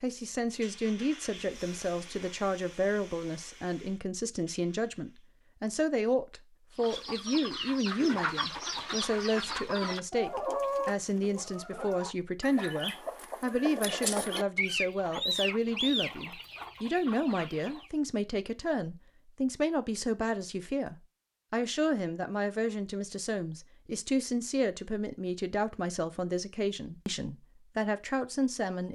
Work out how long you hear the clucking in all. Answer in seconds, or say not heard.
11 s.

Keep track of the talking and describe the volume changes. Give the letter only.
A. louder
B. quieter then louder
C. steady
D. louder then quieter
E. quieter
C.